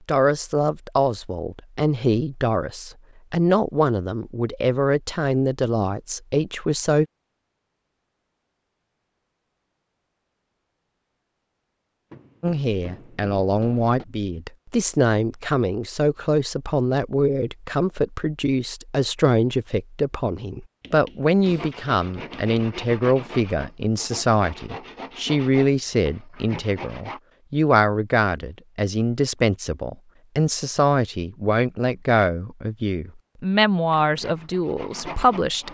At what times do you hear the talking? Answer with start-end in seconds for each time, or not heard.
0.1-7.0, 12.4-35.6.